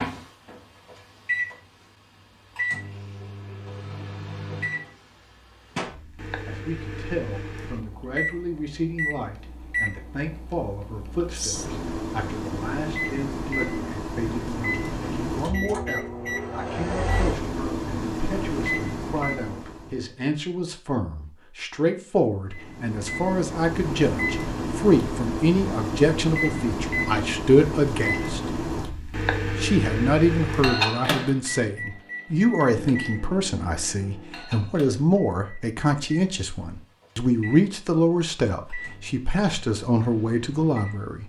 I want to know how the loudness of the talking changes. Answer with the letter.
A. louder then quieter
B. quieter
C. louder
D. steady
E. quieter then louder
C.